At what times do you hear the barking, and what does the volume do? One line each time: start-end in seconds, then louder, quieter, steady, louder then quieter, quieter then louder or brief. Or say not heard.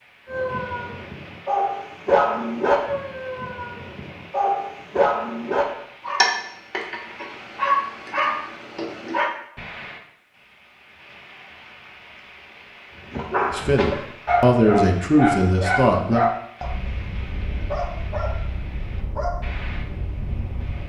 0.2-9.3 steady
13.1-20.8 quieter.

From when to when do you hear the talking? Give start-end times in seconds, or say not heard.
13.5-16.2.